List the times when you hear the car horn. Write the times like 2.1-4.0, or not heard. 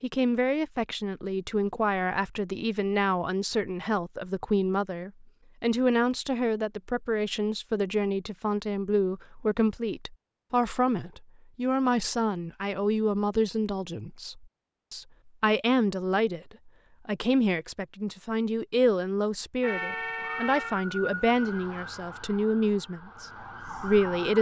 19.6-20.8.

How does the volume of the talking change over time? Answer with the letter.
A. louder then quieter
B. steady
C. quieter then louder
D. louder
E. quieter
B.